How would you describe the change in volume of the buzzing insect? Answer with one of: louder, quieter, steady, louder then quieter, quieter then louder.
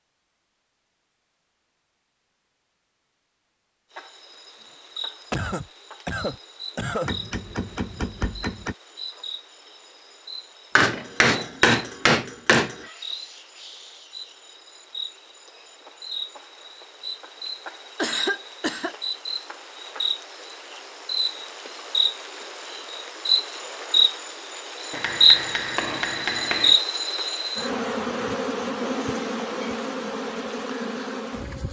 louder.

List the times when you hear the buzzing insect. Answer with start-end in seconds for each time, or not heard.
3.9-31.6.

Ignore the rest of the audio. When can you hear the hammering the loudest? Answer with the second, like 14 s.
12 s.